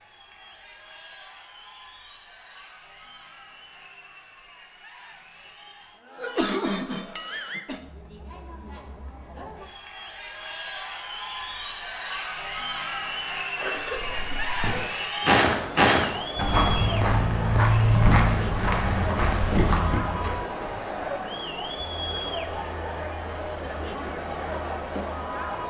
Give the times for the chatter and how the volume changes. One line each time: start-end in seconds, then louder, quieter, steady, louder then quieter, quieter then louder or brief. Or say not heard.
0.0-25.6 louder.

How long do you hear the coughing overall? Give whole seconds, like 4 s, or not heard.
3 s.